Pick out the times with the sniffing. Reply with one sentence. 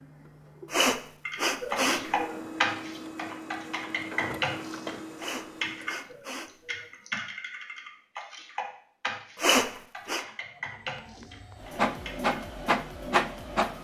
You can hear the sniffing from 0.7 to 2.4 s, from 5.2 to 6.9 s and from 9.3 to 10.2 s.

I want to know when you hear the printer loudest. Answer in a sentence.
The volume of the printer peaks at 13 seconds.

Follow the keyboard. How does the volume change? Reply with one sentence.
The loudness of the keyboard goes down.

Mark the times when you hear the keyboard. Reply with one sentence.
You can hear the keyboard from 1.2 to 12.3 s.